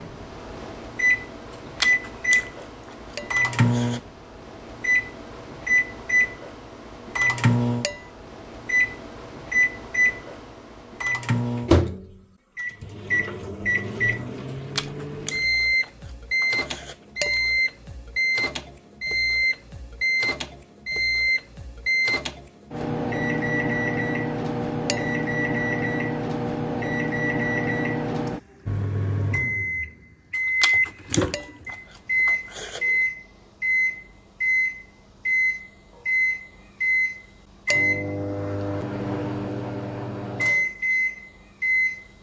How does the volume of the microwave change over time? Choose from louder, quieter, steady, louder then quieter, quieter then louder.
steady.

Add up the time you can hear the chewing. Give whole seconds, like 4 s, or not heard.
8 s.